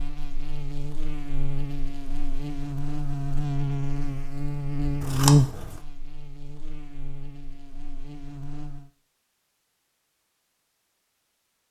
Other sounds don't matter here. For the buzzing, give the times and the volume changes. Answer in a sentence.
The buzzing can be heard from 0.0 to 8.9 s, getting louder then quieter.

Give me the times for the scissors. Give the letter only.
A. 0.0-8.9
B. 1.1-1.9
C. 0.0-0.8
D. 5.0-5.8
D.